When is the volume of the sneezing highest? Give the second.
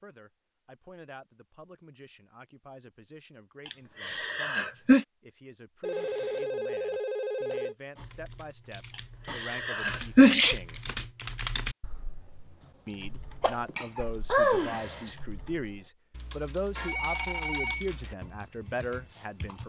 10 s.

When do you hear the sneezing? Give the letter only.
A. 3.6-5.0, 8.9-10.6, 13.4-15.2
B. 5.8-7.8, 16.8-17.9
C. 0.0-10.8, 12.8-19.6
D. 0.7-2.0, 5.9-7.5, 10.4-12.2
A.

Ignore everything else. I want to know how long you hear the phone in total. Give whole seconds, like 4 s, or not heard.
3 s.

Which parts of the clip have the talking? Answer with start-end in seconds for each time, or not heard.
0.0-10.8, 12.8-19.6.